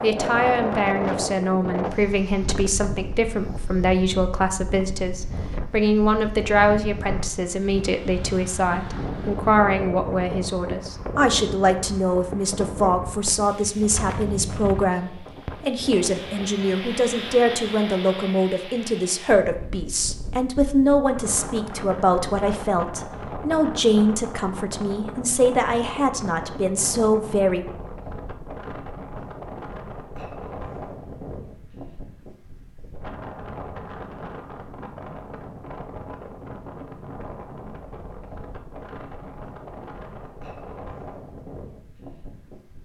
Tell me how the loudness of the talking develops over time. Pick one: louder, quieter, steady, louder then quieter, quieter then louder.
steady.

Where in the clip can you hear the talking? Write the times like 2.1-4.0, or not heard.
0.0-27.6.